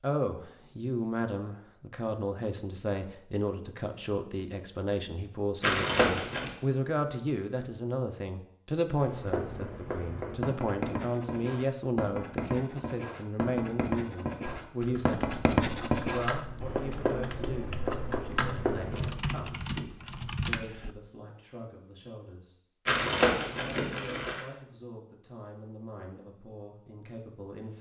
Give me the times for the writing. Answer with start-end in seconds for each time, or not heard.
8.9-19.1.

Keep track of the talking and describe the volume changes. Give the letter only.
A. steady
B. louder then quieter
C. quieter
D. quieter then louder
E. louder
C.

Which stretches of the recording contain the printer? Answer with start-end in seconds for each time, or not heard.
not heard.